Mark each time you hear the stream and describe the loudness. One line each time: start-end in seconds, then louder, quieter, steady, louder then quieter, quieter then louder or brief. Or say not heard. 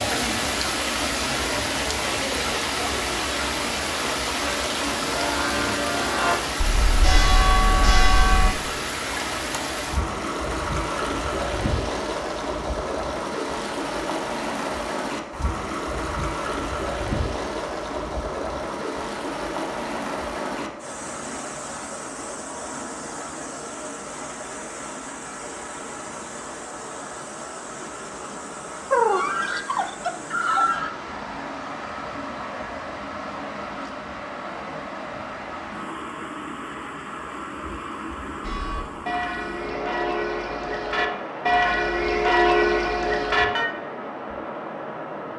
0.0-45.3 quieter.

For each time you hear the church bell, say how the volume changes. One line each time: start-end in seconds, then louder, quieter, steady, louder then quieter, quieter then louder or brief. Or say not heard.
3.2-8.5 louder
38.4-43.6 louder.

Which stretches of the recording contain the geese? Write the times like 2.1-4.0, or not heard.
28.9-30.9.